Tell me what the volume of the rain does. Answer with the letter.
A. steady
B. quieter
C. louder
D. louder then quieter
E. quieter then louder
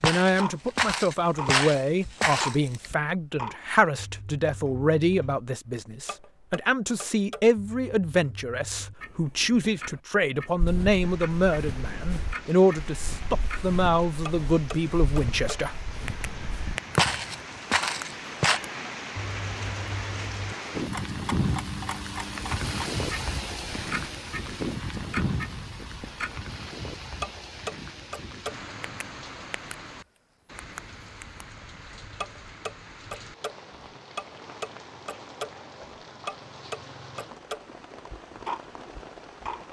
D.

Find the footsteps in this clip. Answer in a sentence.
You can hear the footsteps from 0.0 to 2.9 s and from 10.6 to 18.6 s.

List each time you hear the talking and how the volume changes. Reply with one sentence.
The talking can be heard from 0.0 to 15.8 s, at a steady volume.